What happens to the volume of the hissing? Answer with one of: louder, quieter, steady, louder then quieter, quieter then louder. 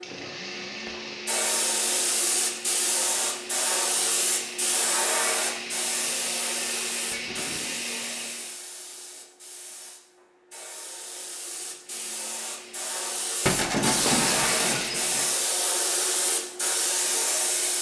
quieter then louder.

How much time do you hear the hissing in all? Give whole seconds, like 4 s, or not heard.
18 s.